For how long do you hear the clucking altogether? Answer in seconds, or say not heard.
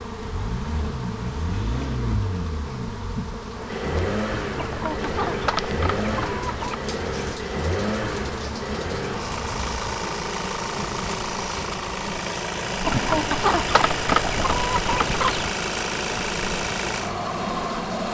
5 s.